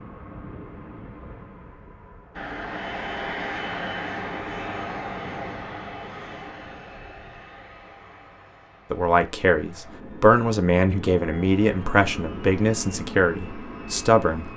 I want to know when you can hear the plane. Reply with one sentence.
The plane can be heard from 0.0 to 14.5 s.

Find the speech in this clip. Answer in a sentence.
The speech can be heard from 8.9 to 14.5 s.